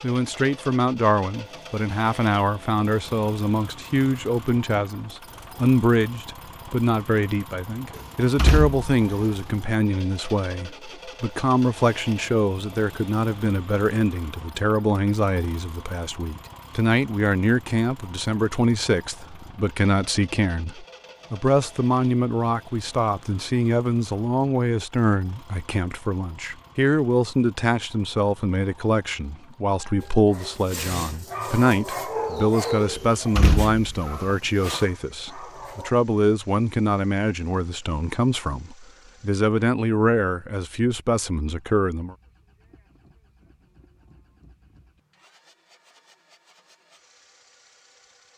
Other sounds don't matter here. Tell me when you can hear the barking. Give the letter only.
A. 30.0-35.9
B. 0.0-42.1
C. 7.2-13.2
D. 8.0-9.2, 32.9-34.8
A.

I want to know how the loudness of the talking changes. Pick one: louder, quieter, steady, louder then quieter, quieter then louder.
steady.